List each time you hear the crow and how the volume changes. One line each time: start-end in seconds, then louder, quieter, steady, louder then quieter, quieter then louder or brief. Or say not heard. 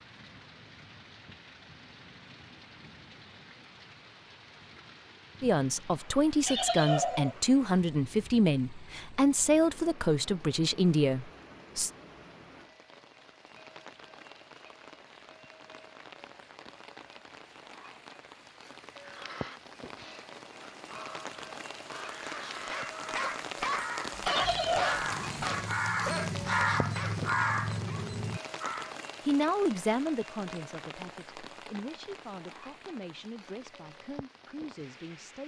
18.9-28.9 louder.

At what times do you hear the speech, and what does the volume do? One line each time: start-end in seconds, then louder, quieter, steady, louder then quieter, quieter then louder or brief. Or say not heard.
5.4-11.9 steady
29.2-35.4 quieter.